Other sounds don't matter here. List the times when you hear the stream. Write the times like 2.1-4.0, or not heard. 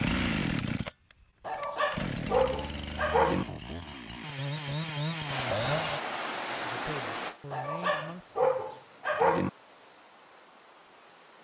5.2-11.3.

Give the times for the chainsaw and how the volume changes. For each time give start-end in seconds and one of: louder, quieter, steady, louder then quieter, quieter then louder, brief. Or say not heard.
0.0-6.0 quieter then louder.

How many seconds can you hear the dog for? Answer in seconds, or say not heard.
4 s.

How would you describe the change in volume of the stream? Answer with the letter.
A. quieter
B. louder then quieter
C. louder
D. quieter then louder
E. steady
A.